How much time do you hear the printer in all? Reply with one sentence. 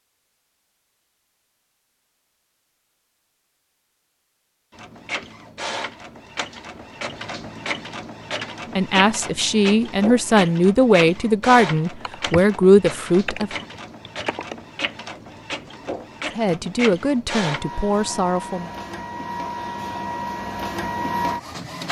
The printer can be heard for 17 seconds in total.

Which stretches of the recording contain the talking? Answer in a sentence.
The talking can be heard from 8.8 to 13.5 s and from 16.4 to 18.7 s.